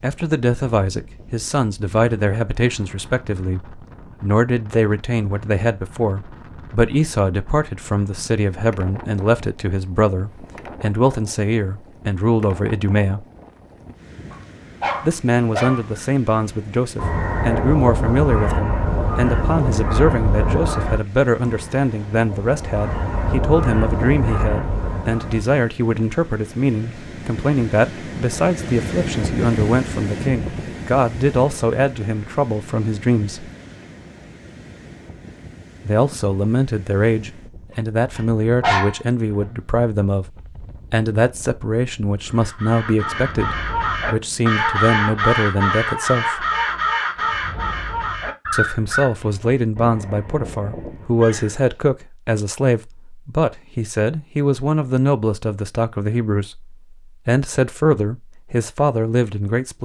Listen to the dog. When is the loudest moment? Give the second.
39 s.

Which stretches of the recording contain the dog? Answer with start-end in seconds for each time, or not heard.
14.3-15.9, 38.1-39.0.